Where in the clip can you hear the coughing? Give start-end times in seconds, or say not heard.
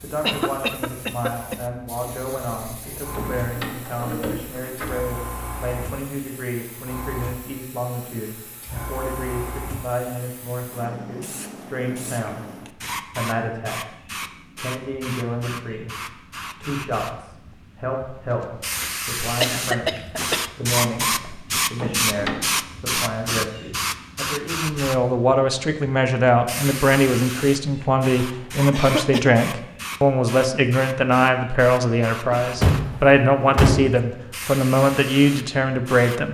0.2-1.6, 19.4-20.5, 28.7-29.3.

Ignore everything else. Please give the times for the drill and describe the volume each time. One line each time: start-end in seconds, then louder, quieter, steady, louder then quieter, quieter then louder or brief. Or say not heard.
not heard.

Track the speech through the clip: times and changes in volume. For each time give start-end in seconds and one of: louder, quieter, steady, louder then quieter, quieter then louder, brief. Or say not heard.
0.0-36.2 louder.